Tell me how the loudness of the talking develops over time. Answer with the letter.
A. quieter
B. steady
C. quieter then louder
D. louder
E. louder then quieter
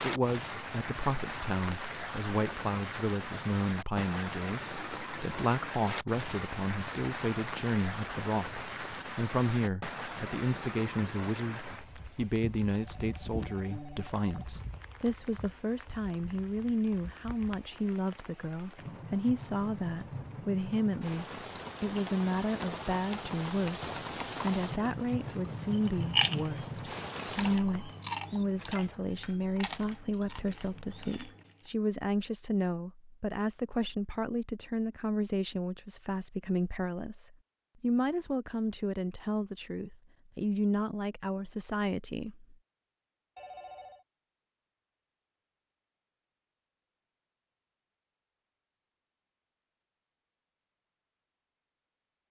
B.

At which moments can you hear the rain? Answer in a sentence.
You can hear the rain from 0.0 to 27.6 s.